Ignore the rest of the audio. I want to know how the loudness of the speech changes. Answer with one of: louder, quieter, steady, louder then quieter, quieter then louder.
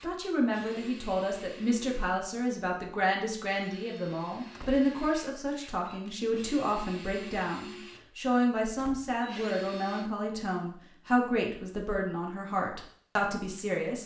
steady.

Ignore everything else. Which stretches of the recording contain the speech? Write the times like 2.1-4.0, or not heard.
0.0-14.0.